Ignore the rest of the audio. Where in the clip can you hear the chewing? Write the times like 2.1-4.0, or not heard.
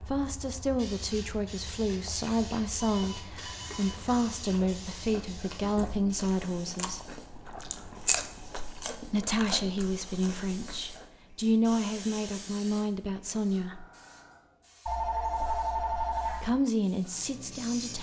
1.7-11.2.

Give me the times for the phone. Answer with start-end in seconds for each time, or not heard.
2.9-4.1, 7.5-8.2, 14.8-16.5.